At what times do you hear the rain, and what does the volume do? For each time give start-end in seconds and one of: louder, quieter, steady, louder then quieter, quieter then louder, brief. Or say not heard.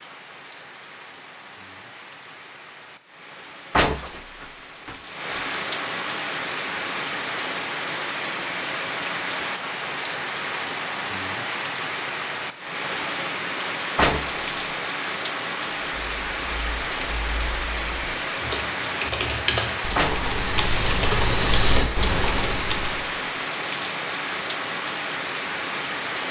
0.0-26.2 louder.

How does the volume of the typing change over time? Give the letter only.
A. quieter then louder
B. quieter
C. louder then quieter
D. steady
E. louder
E.